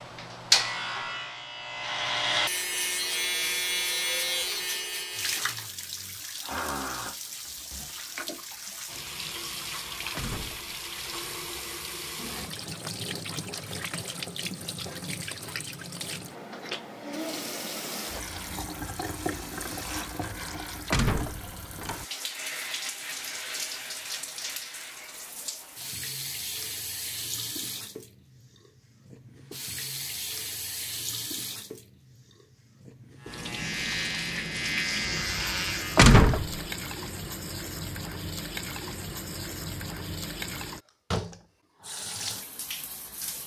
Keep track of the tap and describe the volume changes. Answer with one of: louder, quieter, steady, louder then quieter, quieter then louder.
steady.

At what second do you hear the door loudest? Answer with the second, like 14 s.
36 s.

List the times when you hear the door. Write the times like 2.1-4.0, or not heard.
10.2-11.4, 20.9-22.1, 36.0-36.6.